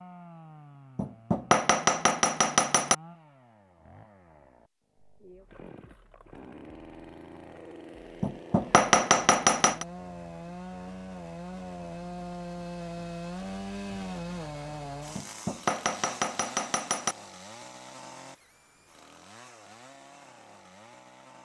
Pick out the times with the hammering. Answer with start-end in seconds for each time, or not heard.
0.9-3.0, 8.2-9.8, 15.2-17.1.